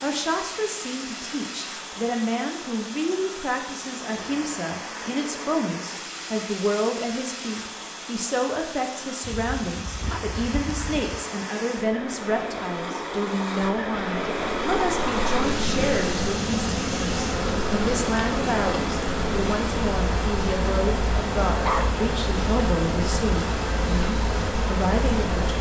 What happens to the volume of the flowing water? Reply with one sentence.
The volume of the flowing water goes up.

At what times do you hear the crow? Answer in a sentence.
The crow can't be heard in this clip.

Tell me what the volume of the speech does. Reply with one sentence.
The loudness of the speech stays about the same.